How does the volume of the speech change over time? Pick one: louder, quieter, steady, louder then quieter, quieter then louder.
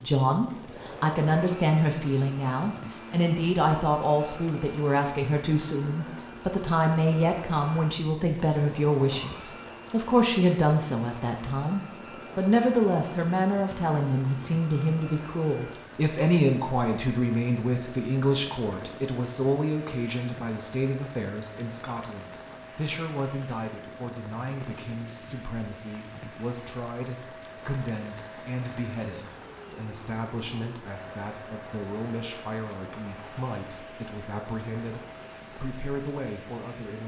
quieter.